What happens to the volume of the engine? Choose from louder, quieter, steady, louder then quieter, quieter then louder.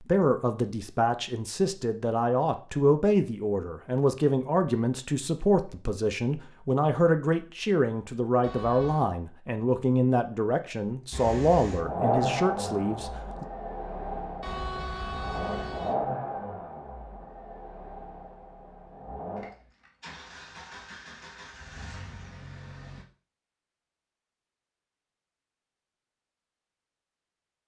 quieter.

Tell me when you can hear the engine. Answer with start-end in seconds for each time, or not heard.
11.1-23.1.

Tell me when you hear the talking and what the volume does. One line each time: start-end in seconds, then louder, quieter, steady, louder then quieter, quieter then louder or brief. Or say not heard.
0.0-13.4 steady.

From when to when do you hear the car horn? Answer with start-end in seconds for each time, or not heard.
8.4-9.1, 14.4-15.9.